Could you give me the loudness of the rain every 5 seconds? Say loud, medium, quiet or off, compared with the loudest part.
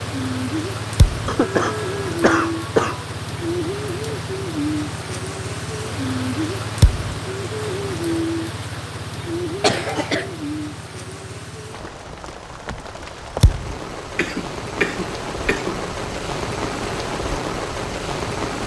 loud, loud, medium, loud.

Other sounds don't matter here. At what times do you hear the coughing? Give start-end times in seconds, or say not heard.
1.2-3.0, 9.6-10.3, 14.2-15.9.